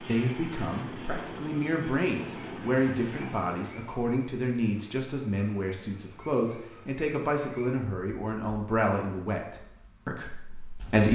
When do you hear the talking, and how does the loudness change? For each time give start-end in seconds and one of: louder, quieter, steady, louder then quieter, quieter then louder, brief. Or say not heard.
0.0-11.0 steady.